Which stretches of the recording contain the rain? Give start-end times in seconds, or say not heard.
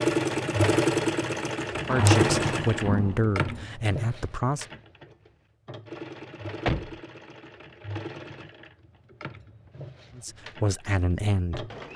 not heard.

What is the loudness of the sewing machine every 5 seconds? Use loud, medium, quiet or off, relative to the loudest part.
loud, quiet, quiet.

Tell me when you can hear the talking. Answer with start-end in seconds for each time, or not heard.
1.8-4.7, 10.2-11.7.